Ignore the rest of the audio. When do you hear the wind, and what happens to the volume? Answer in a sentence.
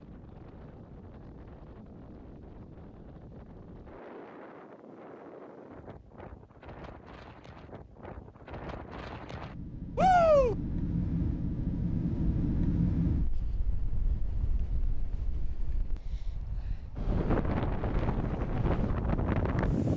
The wind can be heard from 0.0 to 19.9 s, getting louder.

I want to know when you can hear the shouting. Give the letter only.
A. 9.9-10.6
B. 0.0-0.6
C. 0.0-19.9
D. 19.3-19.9
A.